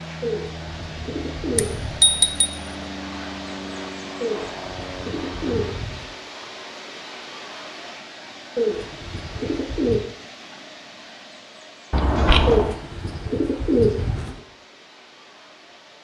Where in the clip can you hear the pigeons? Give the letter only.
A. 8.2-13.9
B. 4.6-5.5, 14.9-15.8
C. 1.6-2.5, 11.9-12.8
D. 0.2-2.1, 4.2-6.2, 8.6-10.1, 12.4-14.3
D.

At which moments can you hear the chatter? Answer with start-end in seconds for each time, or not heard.
not heard.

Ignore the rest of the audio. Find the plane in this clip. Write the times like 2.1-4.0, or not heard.
0.0-5.8.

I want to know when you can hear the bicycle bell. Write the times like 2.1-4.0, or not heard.
1.6-2.5, 11.9-12.8.